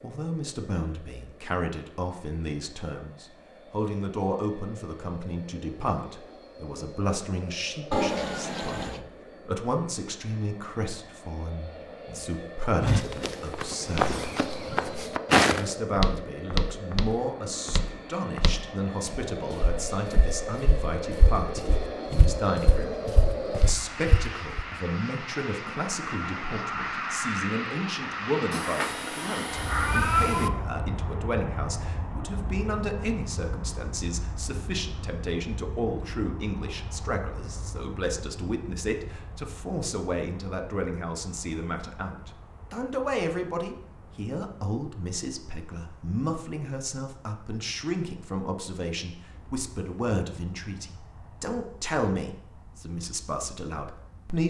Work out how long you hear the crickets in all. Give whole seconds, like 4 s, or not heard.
not heard.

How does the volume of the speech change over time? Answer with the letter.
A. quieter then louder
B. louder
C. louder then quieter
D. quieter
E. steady
E.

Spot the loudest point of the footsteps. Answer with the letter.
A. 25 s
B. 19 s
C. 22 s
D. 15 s
D.